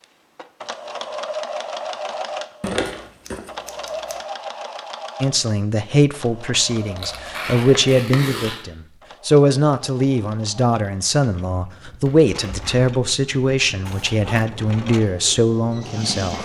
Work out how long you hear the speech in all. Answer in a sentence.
You can hear the speech for 11 seconds altogether.